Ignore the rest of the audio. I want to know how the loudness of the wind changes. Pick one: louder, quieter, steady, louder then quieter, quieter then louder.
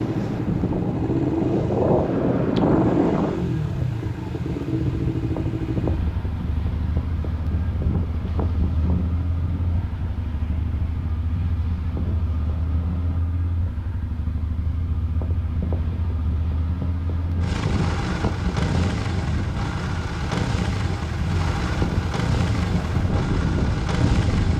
quieter then louder.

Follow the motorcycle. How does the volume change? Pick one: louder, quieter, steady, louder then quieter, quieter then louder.
quieter then louder.